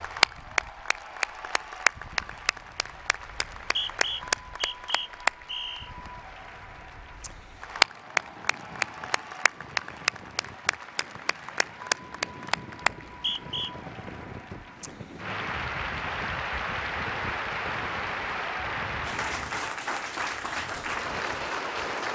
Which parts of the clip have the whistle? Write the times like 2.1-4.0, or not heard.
3.4-5.9, 13.1-13.7.